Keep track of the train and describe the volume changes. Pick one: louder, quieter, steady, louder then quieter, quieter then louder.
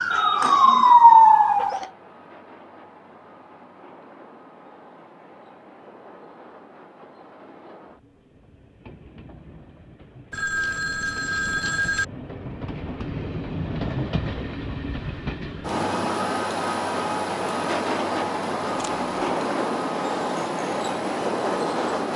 louder.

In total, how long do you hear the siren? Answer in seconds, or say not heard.
2 s.